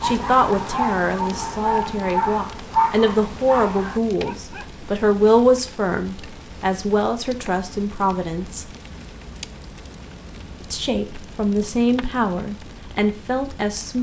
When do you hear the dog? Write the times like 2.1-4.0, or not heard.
0.0-4.7.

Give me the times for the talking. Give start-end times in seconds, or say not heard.
0.0-8.7, 10.7-13.9.